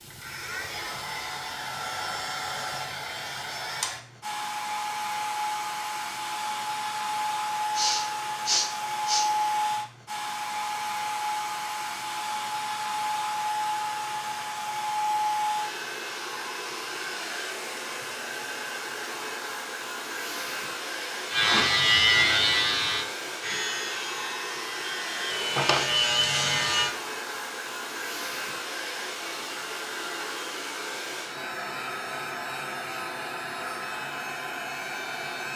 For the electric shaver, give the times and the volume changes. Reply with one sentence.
The electric shaver can be heard from 21.3 to 26.9 s, getting quieter then louder.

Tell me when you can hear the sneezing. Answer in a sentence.
The sneezing can be heard from 7.7 to 9.2 s.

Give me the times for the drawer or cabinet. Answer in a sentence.
The drawer or cabinet can be heard from 25.1 to 25.9 s.